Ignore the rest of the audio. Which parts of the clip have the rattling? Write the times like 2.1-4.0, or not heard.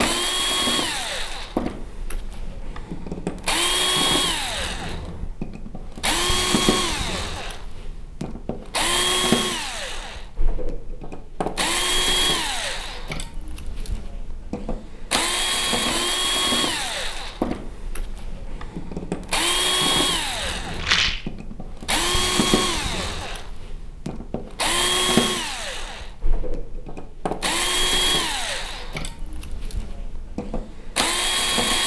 20.8-21.2.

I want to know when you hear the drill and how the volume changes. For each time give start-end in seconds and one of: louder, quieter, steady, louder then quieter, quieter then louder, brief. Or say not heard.
0.0-31.8 steady.